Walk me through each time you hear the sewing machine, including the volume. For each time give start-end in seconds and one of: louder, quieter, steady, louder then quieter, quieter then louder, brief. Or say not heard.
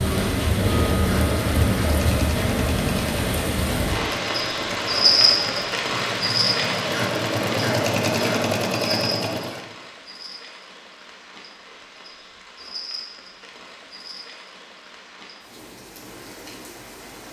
0.2-9.7 louder.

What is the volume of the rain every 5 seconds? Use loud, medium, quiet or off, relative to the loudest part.
loud, loud, quiet, quiet.